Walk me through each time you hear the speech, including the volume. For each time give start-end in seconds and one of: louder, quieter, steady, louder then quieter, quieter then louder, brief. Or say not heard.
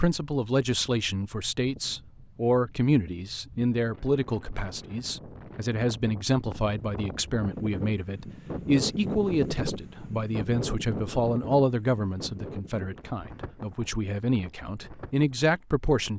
0.0-16.1 steady.